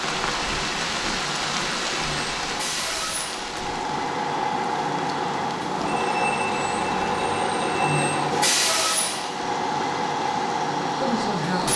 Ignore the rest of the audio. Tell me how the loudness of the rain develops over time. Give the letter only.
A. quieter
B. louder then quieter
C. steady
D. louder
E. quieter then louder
A.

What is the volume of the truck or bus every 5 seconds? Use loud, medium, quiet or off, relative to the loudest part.
medium, loud, loud.